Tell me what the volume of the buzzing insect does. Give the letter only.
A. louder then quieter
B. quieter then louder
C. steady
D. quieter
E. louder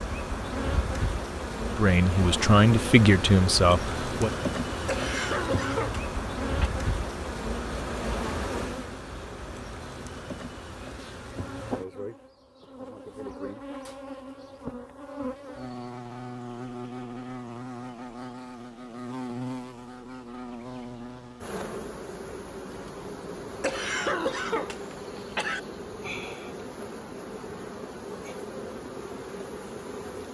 D.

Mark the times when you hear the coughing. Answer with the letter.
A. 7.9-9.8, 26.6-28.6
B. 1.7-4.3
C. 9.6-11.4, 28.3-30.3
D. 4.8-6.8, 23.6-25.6
D.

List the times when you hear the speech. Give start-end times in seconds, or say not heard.
1.7-4.3.